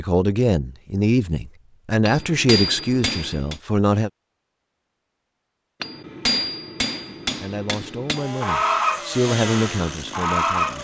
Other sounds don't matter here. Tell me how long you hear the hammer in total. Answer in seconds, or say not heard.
4 s.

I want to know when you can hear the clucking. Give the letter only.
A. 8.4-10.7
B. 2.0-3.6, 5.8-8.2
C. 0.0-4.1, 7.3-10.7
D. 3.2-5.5
A.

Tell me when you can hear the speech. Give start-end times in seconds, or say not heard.
0.0-4.1, 7.3-10.7.